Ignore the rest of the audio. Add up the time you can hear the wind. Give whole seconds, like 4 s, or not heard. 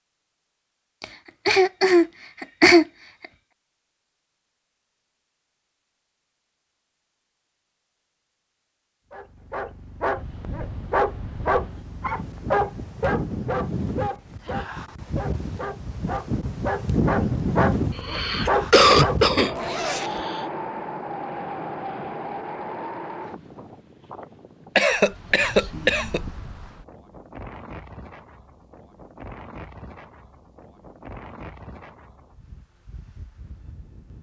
24 s.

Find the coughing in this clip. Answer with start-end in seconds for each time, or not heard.
1.0-2.9, 17.9-20.4, 24.8-26.2.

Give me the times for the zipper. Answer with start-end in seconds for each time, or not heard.
19.6-20.2.